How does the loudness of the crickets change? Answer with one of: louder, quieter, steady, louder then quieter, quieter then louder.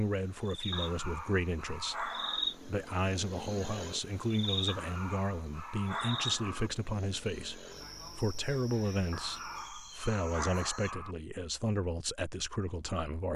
quieter.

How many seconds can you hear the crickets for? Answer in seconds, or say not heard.
11 s.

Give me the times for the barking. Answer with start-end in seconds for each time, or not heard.
0.7-2.5, 4.7-6.7, 9.1-11.2.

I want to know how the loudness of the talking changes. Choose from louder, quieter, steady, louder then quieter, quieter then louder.
steady.